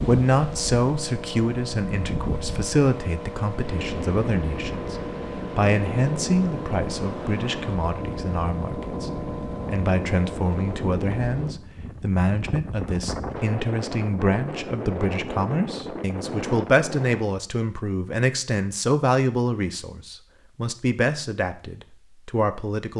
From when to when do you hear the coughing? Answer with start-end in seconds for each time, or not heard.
not heard.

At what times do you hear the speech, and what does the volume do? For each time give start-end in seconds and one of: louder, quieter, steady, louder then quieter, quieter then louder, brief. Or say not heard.
0.1-22.9 steady.